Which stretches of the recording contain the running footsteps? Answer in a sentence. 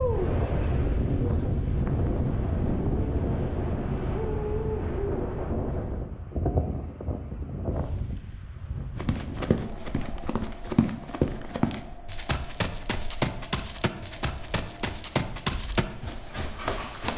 You can hear the running footsteps from 8.9 to 17.1 s.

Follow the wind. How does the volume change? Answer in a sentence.
The volume of the wind goes down.